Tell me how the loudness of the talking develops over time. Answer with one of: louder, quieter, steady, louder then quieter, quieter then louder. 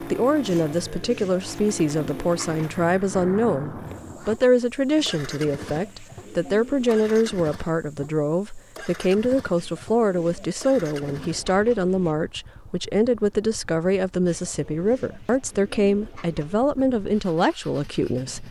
steady.